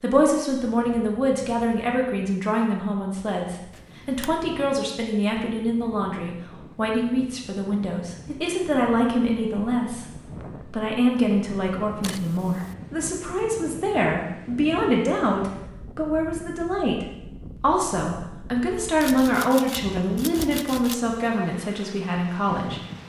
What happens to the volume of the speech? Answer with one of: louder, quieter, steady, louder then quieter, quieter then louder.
steady.